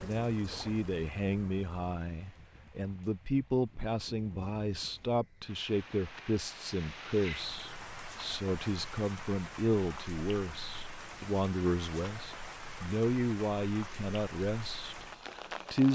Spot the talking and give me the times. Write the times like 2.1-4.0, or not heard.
0.0-15.9.